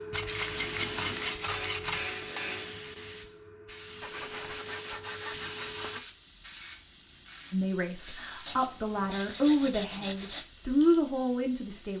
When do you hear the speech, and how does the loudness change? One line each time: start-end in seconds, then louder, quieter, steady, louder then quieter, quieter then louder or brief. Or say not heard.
7.5-11.9 louder.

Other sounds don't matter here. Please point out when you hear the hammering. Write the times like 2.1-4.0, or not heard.
1.3-2.8.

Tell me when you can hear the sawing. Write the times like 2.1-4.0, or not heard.
0.1-2.1, 4.0-6.0, 8.4-10.4.